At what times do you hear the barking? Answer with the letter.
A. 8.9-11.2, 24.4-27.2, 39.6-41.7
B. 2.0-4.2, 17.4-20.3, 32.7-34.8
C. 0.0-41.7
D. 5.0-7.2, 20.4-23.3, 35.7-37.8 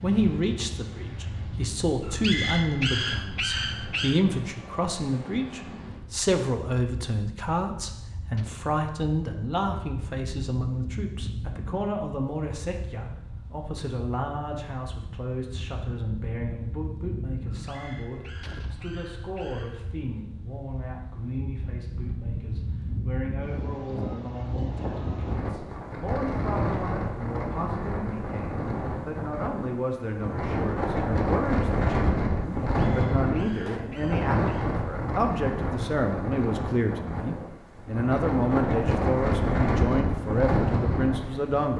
B.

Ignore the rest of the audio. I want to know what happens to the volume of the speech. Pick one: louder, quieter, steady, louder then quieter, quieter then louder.
quieter then louder.